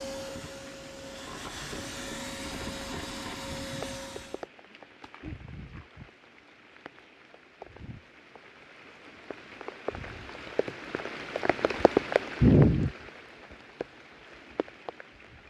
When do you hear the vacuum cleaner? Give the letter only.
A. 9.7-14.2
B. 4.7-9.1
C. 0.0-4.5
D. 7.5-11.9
C.